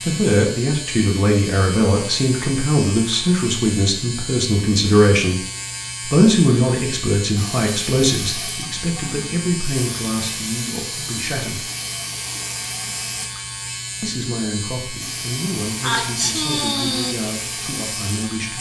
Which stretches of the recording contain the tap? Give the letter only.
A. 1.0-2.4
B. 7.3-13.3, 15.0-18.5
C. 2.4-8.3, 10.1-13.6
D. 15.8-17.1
B.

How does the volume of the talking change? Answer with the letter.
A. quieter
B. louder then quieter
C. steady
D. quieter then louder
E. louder
A.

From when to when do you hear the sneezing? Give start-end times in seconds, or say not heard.
15.8-17.1.